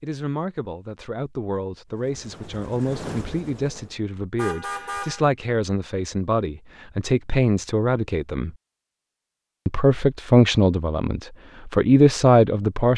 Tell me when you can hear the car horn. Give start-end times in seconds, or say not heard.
4.3-5.2.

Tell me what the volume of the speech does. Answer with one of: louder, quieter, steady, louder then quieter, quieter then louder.
louder.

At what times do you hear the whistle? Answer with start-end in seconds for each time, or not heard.
not heard.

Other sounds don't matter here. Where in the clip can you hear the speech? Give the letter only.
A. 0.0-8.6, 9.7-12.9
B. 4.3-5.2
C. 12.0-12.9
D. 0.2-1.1
A.